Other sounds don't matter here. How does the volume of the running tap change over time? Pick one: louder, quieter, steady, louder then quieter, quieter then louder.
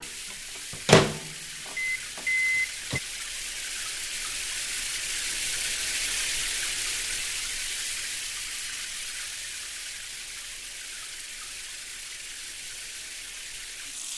louder then quieter.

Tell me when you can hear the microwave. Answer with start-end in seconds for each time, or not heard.
0.7-3.0.